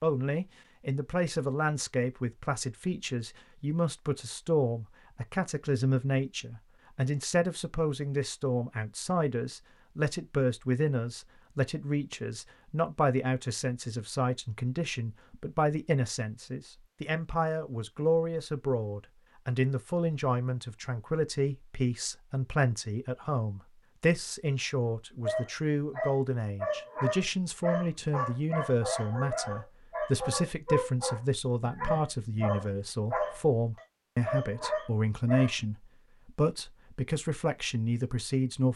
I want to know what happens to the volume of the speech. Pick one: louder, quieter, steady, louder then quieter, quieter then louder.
steady.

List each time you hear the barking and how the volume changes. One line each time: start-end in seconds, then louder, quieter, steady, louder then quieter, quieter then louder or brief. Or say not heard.
25.2-35.5 steady.